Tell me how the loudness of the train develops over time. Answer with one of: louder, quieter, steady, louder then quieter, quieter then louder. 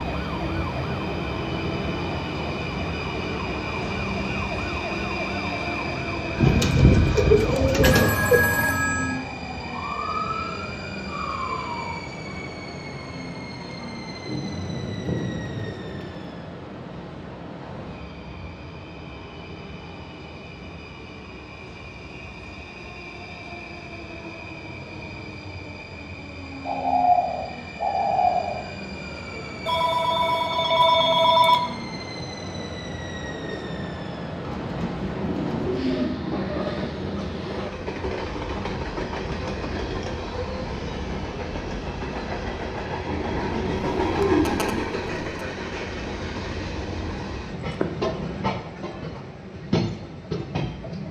quieter then louder.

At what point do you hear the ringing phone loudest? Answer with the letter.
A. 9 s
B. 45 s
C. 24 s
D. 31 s
D.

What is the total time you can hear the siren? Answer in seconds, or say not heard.
12 s.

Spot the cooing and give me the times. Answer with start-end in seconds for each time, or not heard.
6.3-8.4, 14.2-16.3, 26.6-28.6, 34.4-36.1, 43.0-45.0.